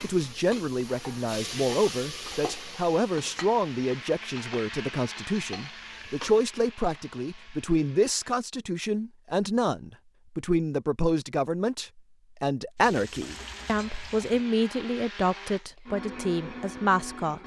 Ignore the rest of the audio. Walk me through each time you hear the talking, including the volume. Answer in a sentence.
You can hear the talking from 0.0 to 17.4 s, at a steady volume.